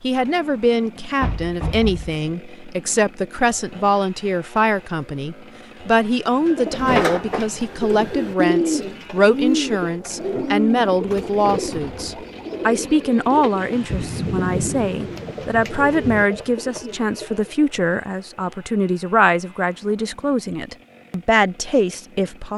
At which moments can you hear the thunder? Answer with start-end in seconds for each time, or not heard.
13.7-16.2.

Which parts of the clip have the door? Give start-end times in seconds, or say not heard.
1.2-2.1.